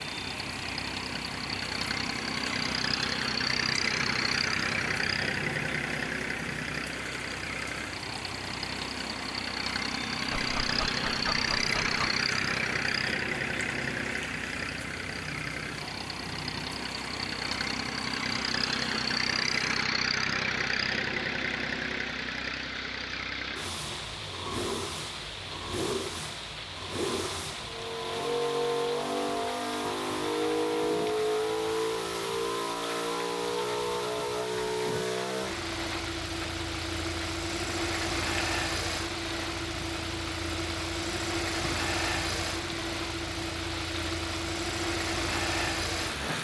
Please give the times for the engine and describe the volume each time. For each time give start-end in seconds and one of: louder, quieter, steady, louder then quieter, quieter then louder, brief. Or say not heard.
0.0-46.3 steady.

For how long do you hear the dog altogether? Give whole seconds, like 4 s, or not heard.
2 s.